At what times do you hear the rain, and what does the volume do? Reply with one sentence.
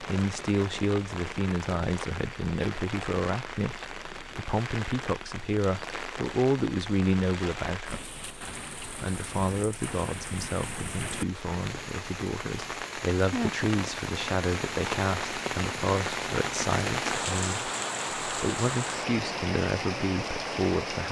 The rain can be heard from 0.0 to 21.0 s, getting louder.